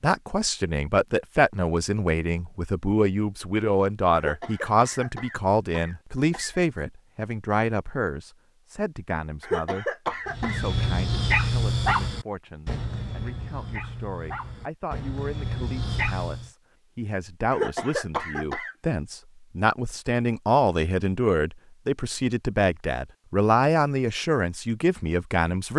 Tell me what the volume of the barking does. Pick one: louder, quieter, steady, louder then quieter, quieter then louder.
quieter then louder.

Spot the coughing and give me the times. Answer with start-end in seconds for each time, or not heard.
4.2-6.6, 9.4-10.7, 17.5-18.8.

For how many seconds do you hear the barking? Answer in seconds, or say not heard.
6 s.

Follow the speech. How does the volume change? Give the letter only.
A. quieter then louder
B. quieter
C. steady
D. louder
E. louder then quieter
A.